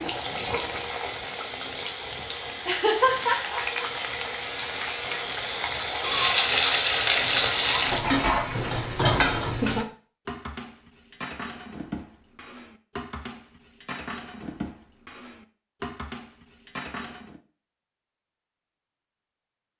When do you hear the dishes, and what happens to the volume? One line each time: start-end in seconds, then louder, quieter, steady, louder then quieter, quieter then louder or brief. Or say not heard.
7.8-17.4 quieter.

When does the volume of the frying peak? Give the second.
7 s.